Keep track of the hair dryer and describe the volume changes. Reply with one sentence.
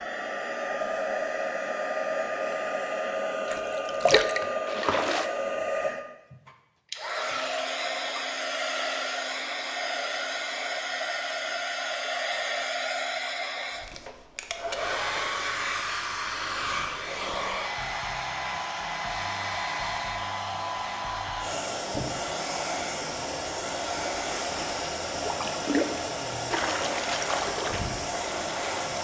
The volume of the hair dryer stays about the same.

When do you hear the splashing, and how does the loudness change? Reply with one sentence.
The splashing can be heard briefly from 3.5 to 5.2 s; and from 24.2 to 28.9 s, getting louder then quieter.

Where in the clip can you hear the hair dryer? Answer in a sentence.
The hair dryer can be heard from 0.0 to 28.9 s.